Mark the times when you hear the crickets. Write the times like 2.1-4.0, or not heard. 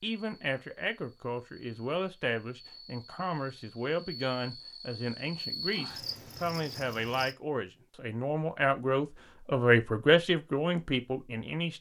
0.1-7.3.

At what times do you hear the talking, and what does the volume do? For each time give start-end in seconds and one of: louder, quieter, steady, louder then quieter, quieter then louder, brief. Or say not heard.
0.0-11.7 louder.